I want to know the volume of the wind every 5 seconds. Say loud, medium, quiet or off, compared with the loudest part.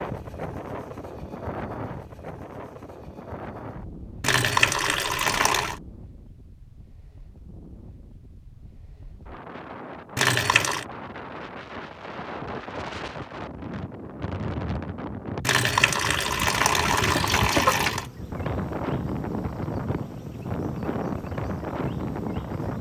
medium, quiet, medium, loud, loud.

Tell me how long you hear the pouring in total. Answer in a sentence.
You can hear the pouring for 5 seconds altogether.